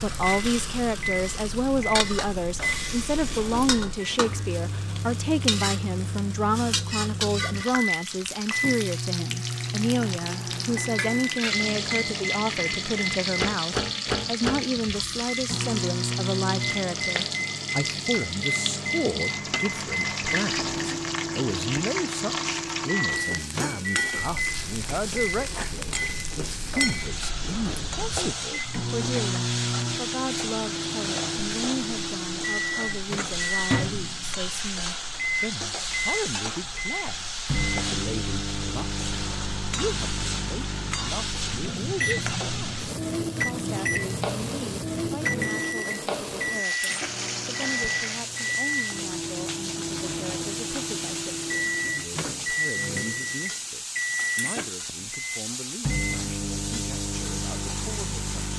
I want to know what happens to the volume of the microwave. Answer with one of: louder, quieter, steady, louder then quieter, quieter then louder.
steady.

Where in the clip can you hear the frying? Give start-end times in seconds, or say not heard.
0.0-58.5.